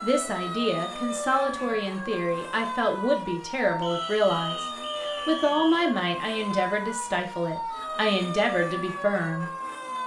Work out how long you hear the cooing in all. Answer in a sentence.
You can't hear the cooing here.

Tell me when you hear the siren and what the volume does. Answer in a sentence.
You can hear the siren from 0.0 to 10.0 s, at a steady volume.